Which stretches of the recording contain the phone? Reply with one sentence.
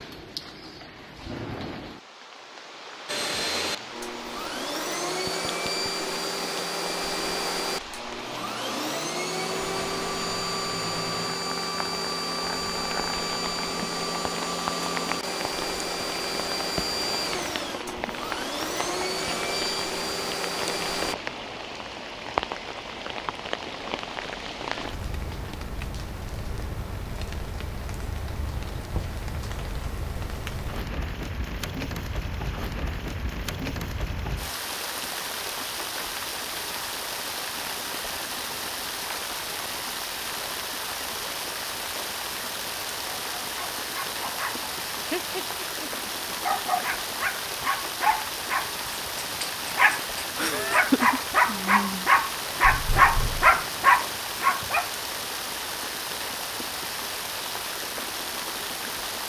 You can't hear the phone here.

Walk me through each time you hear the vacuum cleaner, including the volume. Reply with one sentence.
You can hear the vacuum cleaner from 3.0 to 21.1 s, at a steady volume.